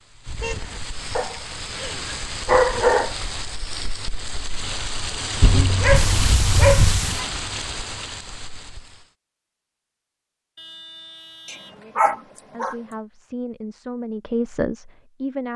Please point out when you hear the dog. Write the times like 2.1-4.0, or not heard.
1.1-3.1, 5.4-7.0, 11.4-12.8.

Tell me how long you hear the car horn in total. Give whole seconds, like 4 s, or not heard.
3 s.